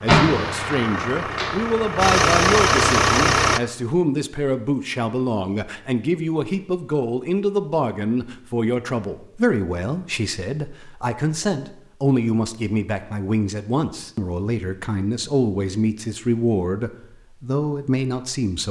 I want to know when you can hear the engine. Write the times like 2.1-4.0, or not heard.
0.0-3.6.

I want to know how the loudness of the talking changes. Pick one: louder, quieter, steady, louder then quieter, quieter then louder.
steady.